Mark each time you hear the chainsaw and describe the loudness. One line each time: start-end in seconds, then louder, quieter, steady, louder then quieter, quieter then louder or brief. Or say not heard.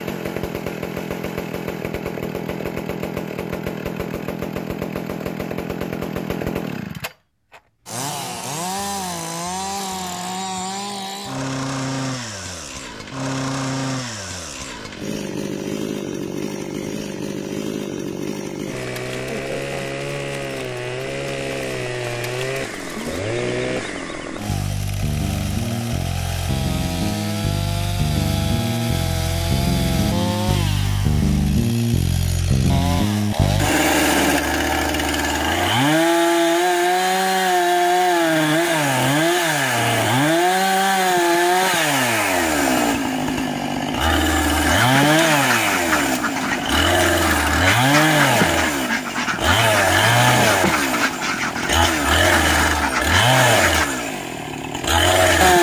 0.0-55.5 louder.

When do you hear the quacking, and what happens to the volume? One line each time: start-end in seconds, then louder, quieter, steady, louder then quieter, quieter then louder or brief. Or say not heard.
44.6-53.9 steady.